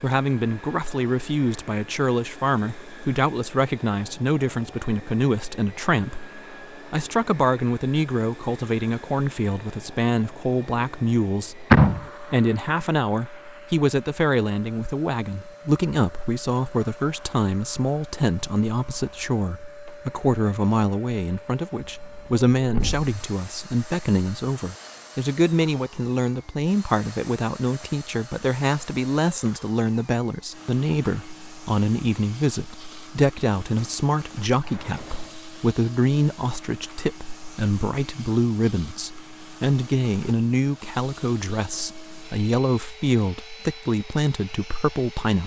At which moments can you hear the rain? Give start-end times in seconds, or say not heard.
not heard.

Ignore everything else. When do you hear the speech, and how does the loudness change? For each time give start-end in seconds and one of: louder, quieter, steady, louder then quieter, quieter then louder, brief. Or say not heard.
0.0-45.4 steady.